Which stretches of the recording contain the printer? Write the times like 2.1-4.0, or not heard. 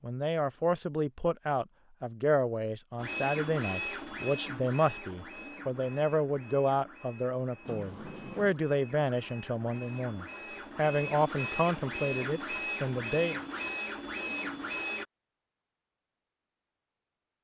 3.0-15.1.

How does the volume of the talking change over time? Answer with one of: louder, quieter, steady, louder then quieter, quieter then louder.
steady.